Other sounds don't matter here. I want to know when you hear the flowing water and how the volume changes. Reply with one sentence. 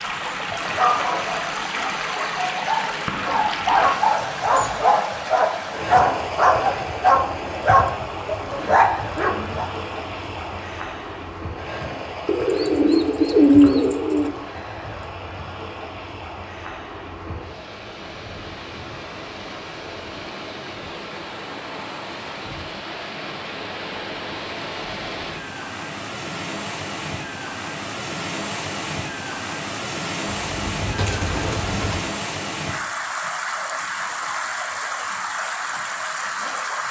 The flowing water can be heard from 0.0 to 36.8 s, getting quieter then louder.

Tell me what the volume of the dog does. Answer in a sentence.
The volume of the dog goes up.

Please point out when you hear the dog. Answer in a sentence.
You can hear the dog from 0.7 to 9.7 s.